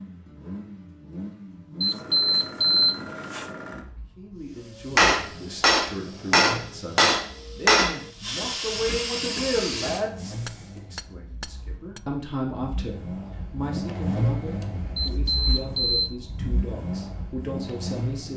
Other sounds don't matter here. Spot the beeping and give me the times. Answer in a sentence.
The beeping can be heard from 1.8 to 3.5 s and from 14.9 to 16.1 s.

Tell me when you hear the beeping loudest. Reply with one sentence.
The volume of the beeping peaks at 3 seconds.